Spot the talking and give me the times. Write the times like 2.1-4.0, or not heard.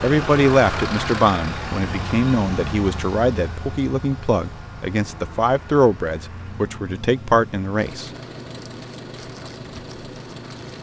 0.0-8.1.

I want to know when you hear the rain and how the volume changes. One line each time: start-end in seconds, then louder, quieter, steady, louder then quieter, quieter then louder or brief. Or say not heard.
not heard.